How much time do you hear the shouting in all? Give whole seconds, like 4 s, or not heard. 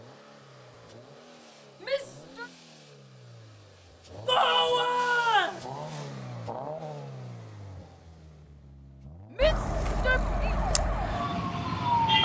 3 s.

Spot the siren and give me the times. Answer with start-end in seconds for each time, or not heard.
9.4-12.2.